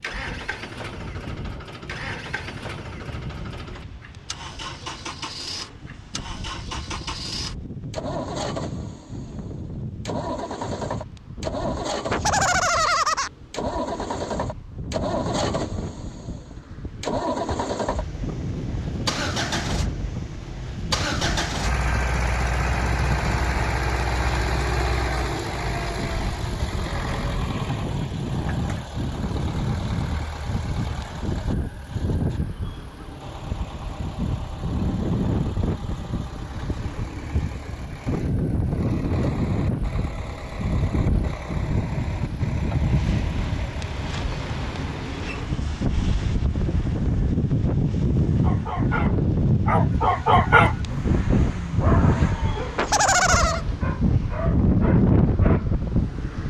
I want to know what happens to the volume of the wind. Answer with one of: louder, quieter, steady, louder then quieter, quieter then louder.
louder.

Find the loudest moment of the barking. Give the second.
50 s.